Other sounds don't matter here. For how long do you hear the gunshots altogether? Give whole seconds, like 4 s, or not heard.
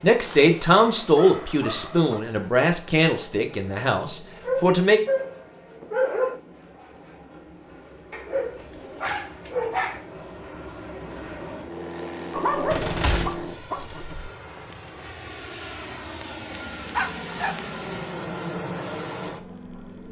2 s.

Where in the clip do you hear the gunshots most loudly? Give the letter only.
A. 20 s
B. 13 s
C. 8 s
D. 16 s
B.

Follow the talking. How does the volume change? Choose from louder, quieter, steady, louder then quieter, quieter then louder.
quieter.